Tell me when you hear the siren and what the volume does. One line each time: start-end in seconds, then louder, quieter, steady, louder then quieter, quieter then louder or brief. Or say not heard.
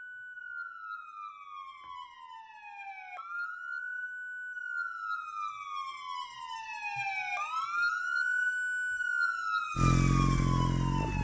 0.0-11.2 louder.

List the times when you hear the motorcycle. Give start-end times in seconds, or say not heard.
9.8-11.2.